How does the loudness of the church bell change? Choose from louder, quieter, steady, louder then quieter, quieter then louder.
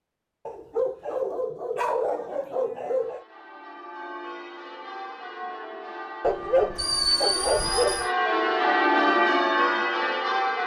louder.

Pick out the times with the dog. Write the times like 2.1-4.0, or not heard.
0.5-3.2, 6.2-8.1.